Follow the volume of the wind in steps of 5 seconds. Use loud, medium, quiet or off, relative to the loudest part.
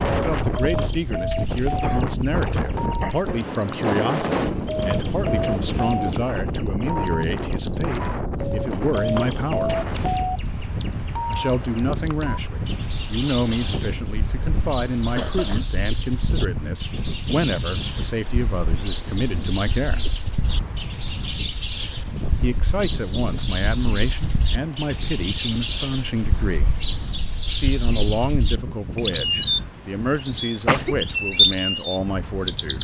loud, loud, medium, medium, medium, medium, quiet.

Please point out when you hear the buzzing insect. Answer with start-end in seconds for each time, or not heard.
not heard.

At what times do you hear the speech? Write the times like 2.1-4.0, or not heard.
0.0-9.8, 11.3-20.0, 22.4-26.7, 27.4-32.7.